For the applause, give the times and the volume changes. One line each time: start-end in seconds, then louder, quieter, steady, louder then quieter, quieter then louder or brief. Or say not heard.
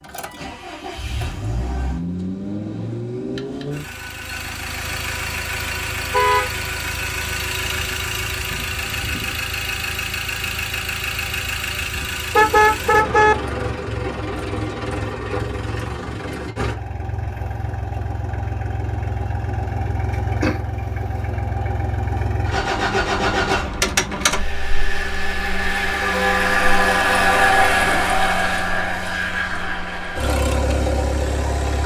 not heard.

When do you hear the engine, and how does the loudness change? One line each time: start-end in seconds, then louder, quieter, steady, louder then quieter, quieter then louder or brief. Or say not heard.
0.0-31.8 louder.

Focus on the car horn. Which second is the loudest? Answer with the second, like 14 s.
13 s.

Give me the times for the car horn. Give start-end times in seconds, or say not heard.
6.1-6.5, 12.3-13.3, 26.0-28.1.